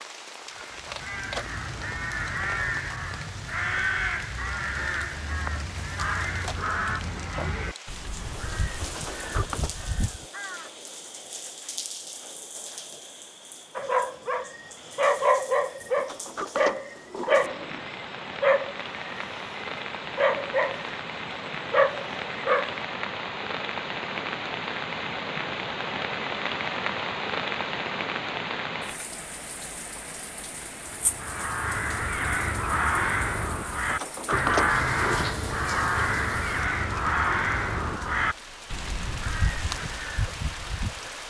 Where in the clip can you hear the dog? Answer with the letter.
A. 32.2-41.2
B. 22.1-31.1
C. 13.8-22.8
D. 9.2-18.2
C.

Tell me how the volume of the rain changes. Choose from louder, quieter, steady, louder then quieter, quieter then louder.
louder then quieter.